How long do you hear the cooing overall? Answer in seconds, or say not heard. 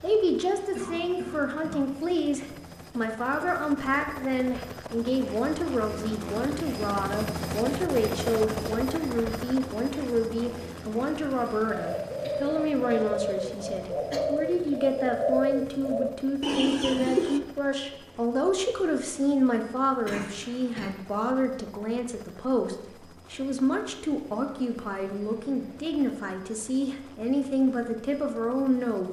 6 s.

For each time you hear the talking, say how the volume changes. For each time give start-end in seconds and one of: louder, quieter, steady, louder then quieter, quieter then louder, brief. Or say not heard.
0.0-29.0 steady.